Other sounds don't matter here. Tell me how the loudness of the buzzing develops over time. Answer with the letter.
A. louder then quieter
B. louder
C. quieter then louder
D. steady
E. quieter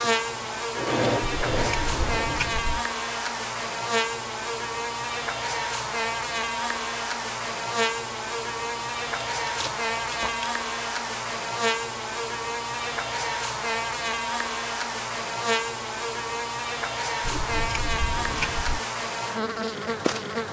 D.